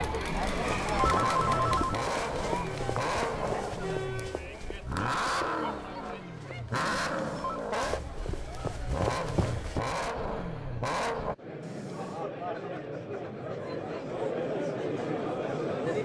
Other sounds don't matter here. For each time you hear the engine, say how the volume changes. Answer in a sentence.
You can hear the engine from 0.0 to 11.3 s, at a steady volume.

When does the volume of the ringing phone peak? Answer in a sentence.
The volume of the ringing phone peaks at 1 second.